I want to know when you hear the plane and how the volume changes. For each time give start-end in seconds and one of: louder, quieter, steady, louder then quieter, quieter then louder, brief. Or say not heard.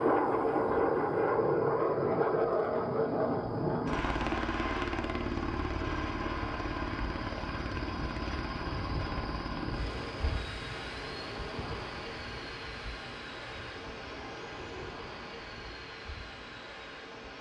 0.0-17.3 quieter.